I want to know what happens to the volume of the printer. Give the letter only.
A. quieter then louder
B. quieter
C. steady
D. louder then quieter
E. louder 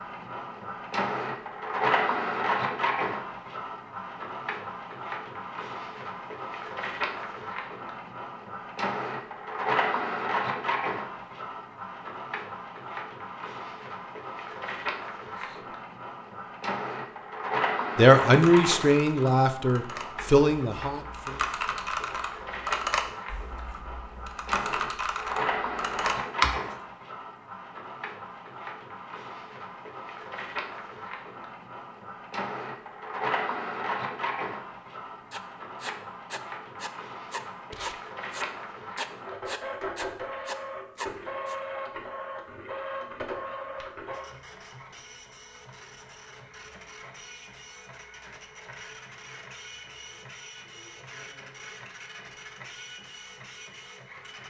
B.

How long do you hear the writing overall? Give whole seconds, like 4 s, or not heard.
6 s.